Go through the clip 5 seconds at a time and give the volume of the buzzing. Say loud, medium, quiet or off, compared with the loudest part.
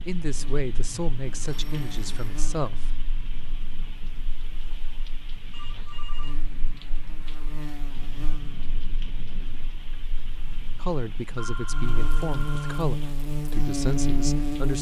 quiet, quiet, loud.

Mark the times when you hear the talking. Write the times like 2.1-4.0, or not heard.
0.1-2.9, 10.8-14.7.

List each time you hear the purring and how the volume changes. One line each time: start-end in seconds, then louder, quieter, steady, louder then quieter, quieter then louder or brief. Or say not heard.
not heard.